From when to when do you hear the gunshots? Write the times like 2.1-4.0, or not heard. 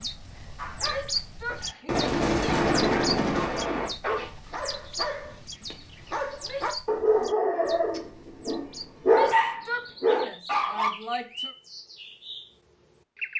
1.9-3.9.